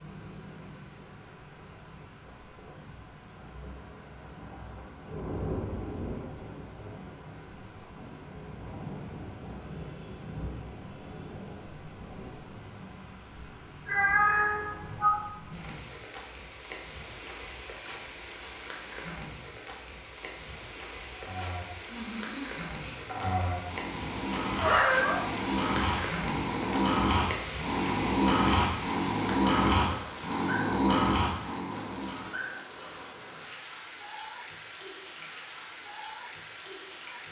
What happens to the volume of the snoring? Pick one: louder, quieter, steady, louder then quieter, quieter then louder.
louder.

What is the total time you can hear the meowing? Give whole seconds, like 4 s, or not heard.
2 s.